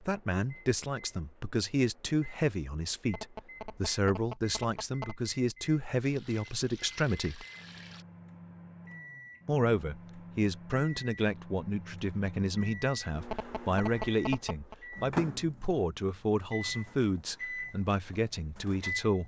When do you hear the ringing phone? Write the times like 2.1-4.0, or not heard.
3.0-5.2, 13.2-14.8.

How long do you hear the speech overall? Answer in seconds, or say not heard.
17 s.